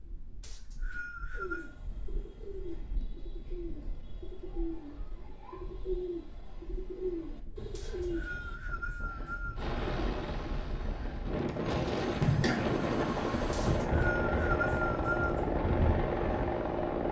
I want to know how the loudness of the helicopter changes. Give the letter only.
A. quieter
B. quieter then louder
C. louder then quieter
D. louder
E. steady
D.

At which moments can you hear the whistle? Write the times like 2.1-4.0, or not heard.
0.4-1.7, 7.8-9.7, 13.5-15.4.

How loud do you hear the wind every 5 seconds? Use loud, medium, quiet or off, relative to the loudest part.
quiet, quiet, loud, loud.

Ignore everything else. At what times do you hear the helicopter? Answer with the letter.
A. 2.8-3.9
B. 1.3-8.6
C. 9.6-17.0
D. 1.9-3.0
C.